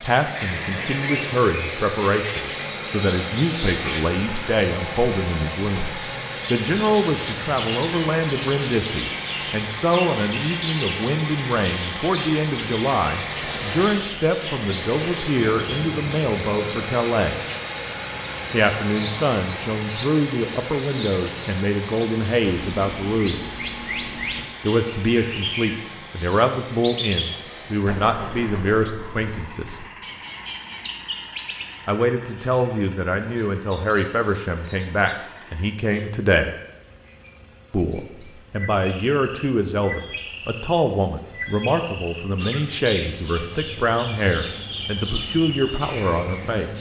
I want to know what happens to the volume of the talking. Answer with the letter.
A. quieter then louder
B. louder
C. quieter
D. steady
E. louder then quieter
D.